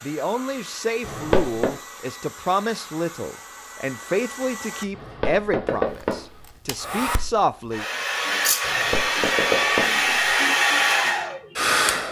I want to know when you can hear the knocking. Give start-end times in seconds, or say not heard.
1.0-1.7, 4.9-6.5, 8.6-10.3.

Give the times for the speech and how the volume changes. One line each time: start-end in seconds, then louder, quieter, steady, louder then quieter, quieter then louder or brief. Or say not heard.
0.0-7.8 steady.